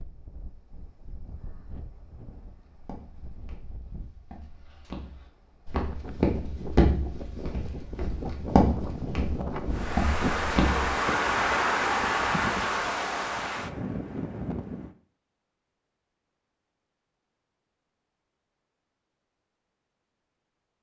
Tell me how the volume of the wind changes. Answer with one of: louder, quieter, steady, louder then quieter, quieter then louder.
louder.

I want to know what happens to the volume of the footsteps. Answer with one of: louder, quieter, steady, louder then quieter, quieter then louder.
louder.